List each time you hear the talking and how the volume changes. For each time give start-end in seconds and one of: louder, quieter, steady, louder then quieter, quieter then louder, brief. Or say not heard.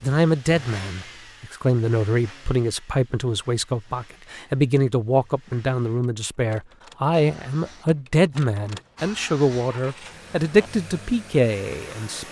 0.0-12.2 steady.